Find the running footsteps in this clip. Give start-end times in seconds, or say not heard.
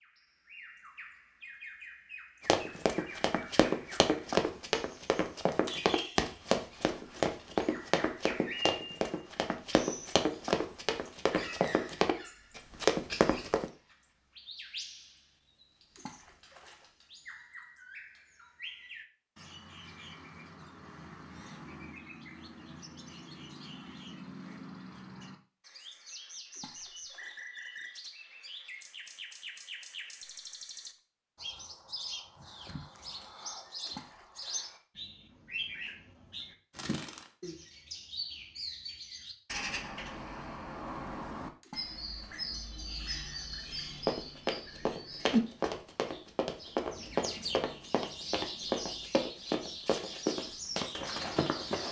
2.5-13.7, 44.0-51.8.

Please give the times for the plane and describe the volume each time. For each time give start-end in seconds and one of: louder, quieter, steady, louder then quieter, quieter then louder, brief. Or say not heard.
not heard.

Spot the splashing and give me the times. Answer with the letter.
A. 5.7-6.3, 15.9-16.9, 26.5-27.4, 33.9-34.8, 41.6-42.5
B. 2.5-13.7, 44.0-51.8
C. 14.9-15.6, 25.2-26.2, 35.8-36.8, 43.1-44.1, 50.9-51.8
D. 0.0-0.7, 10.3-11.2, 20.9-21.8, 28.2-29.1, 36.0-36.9
A.